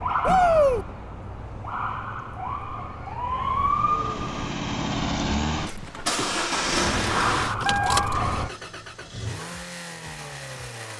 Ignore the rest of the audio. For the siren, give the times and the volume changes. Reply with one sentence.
You can hear the siren from 0.0 to 4.5 s, getting louder; and briefly from 6.8 to 8.5 s.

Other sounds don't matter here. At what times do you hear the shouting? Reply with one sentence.
You can hear the shouting from 0.2 to 0.8 s.